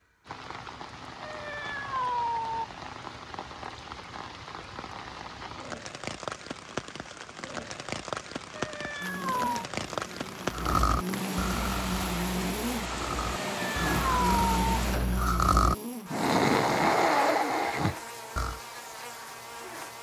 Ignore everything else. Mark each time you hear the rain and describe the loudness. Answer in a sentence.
The rain can be heard from 0.2 to 15.2 s, getting louder.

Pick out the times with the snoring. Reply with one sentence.
You can hear the snoring from 10.5 to 18.6 s.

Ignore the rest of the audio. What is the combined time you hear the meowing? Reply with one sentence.
The meowing can be heard for 4 seconds in total.